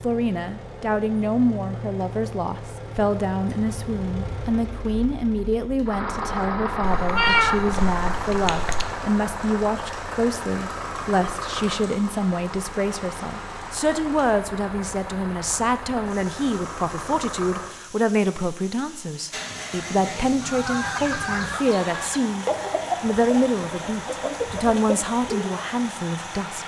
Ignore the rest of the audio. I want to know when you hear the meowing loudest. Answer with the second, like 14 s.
7 s.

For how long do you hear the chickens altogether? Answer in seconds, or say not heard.
6 s.